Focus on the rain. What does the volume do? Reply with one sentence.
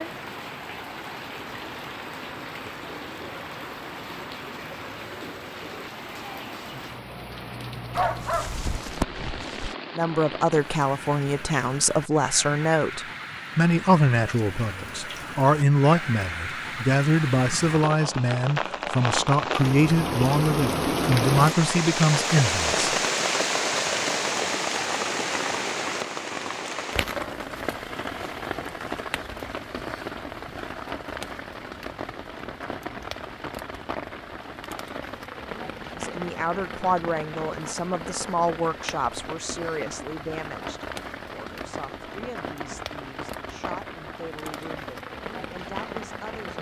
The loudness of the rain goes up, then down.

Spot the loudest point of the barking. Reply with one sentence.
The loudest moment of the barking is at 8 seconds.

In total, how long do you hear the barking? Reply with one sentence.
You can hear the barking for 2 seconds altogether.